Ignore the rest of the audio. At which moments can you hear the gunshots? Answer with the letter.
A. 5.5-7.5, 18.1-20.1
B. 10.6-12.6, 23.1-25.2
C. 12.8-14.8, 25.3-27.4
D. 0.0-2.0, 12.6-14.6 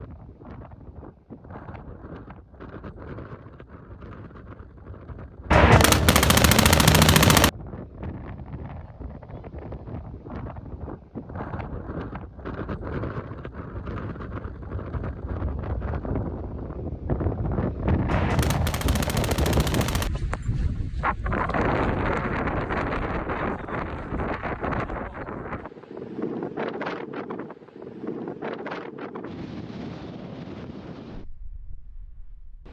A.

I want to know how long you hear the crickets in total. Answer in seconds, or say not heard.
not heard.